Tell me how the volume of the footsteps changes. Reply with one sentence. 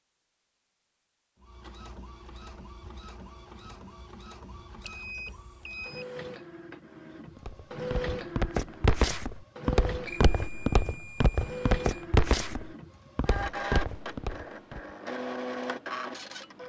The volume of the footsteps goes down.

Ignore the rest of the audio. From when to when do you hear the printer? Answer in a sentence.
The printer can be heard from 1.4 to 16.6 s.